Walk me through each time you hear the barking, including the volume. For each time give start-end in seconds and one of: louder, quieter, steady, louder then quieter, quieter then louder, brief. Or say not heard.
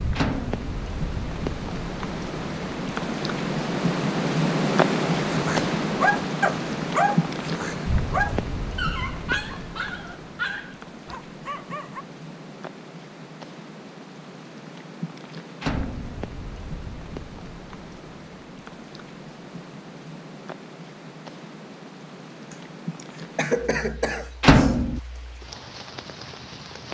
5.2-12.1 quieter.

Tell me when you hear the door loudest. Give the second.
25 s.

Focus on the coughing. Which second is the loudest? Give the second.
24 s.